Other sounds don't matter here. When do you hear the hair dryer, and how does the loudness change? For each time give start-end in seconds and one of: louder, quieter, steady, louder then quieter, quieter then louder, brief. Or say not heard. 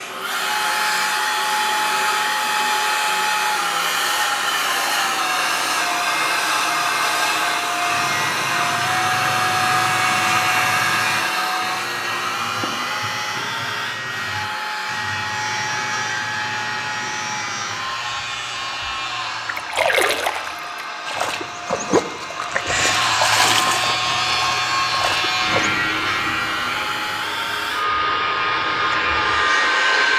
0.0-30.1 quieter then louder.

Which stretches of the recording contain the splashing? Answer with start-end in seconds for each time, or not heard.
19.4-25.8.